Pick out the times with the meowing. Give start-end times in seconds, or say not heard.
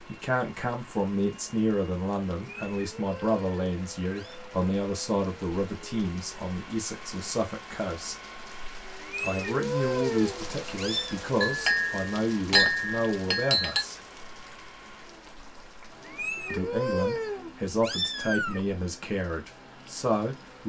2.6-4.4, 9.0-11.2, 16.1-18.6.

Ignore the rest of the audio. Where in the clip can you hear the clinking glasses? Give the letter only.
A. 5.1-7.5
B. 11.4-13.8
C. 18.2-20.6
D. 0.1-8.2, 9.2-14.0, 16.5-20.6
B.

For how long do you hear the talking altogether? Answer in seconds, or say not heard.
17 s.